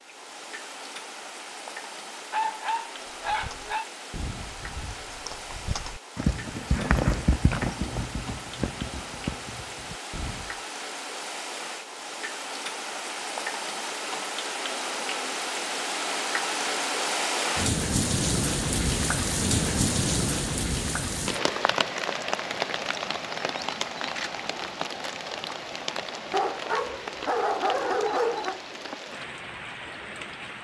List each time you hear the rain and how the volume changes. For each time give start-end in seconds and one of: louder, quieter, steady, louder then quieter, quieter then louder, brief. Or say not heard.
0.0-30.5 louder then quieter.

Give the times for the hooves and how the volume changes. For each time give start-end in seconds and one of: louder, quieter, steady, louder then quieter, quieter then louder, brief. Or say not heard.
3.0-10.6 louder then quieter.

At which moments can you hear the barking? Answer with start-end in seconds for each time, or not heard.
2.3-3.9, 26.3-28.6.